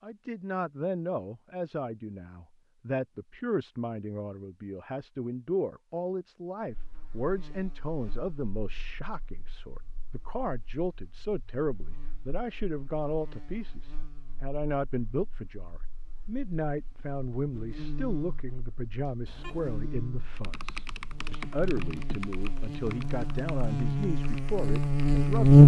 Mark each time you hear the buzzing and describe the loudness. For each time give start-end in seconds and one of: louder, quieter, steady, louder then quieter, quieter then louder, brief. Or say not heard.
6.7-25.6 louder.